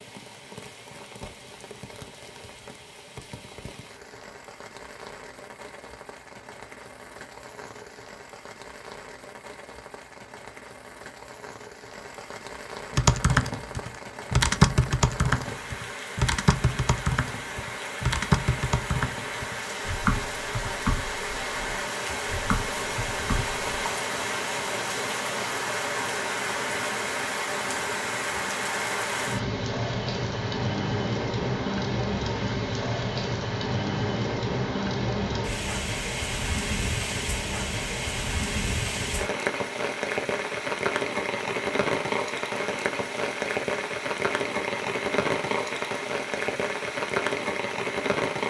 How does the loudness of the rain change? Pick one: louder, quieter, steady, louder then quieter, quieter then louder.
louder.